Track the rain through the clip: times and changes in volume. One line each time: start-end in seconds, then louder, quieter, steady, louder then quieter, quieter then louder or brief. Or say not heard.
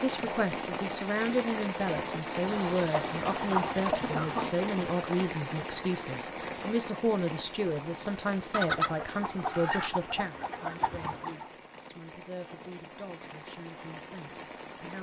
0.0-14.9 quieter.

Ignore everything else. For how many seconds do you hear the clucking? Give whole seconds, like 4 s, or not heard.
5 s.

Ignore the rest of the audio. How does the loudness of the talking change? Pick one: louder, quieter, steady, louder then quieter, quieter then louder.
quieter.